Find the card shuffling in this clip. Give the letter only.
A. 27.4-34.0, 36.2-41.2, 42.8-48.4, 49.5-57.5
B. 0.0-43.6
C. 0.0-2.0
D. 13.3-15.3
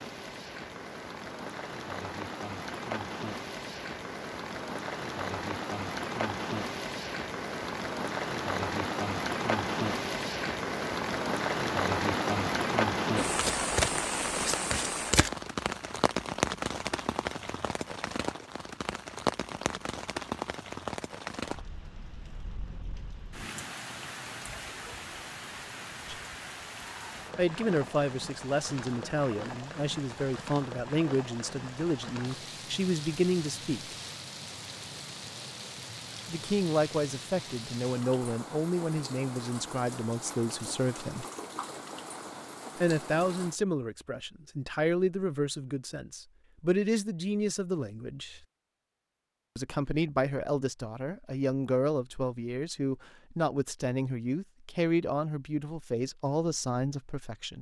D.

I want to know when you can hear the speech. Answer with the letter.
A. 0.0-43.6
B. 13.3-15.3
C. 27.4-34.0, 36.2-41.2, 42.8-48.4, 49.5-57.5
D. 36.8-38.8
C.